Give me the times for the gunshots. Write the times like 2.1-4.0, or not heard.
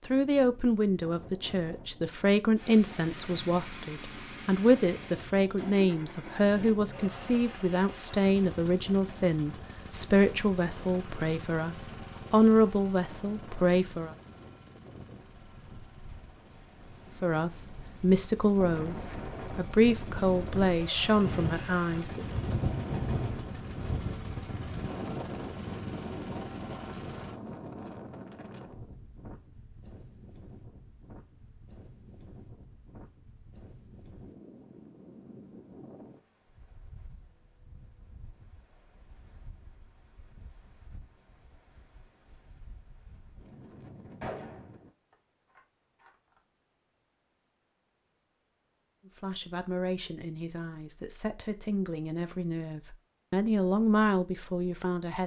44.2-46.1.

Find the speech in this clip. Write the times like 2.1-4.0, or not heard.
0.1-14.2, 17.2-22.3, 49.0-55.2.